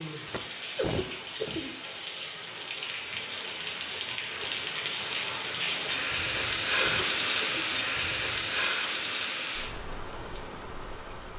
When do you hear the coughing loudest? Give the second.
1 s.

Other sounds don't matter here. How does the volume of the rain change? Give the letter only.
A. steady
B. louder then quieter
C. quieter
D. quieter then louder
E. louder
B.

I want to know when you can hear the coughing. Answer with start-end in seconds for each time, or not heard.
0.2-1.8, 6.2-7.7.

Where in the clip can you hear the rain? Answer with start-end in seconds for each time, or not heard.
0.0-11.3.